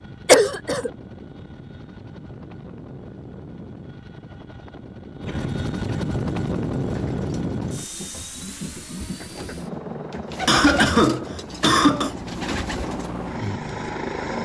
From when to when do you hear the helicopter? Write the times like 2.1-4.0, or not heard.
0.0-14.4.